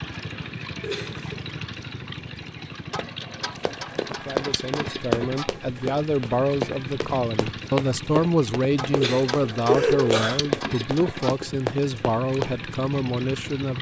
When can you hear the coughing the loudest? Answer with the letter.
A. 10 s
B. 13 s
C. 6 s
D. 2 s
A.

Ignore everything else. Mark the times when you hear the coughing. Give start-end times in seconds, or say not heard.
0.8-1.4, 8.9-10.4.